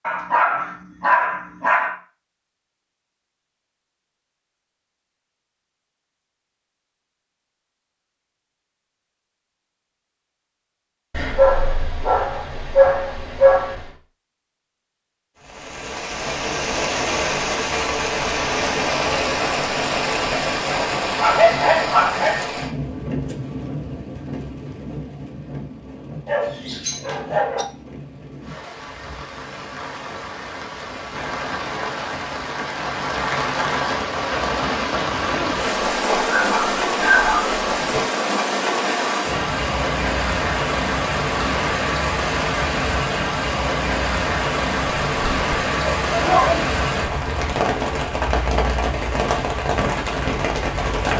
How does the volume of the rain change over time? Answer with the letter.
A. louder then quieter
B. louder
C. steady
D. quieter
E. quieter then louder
E.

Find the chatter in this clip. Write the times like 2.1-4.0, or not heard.
not heard.